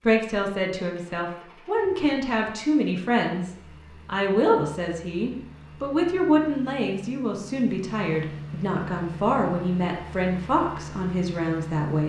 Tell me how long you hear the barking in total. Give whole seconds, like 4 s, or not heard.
not heard.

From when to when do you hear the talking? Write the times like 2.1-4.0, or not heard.
0.0-12.0.